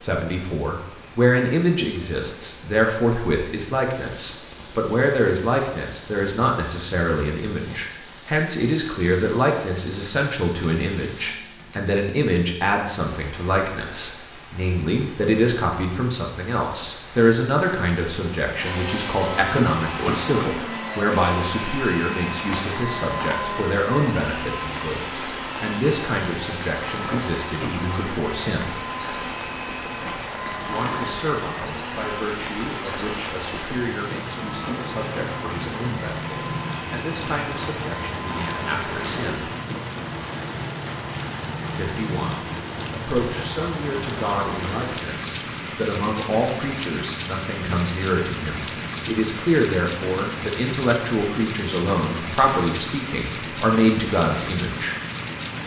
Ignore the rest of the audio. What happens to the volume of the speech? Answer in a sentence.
The volume of the speech goes down, then up.